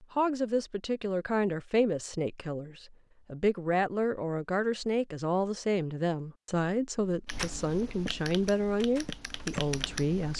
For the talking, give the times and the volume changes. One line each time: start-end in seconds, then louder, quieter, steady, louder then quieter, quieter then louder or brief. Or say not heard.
0.0-10.3 steady.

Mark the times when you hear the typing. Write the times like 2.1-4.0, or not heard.
7.2-10.3.